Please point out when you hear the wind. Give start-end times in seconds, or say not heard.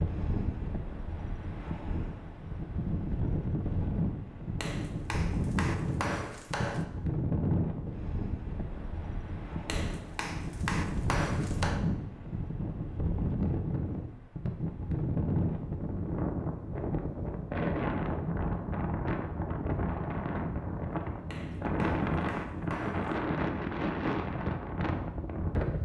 0.0-25.7.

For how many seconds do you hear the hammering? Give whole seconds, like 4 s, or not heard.
6 s.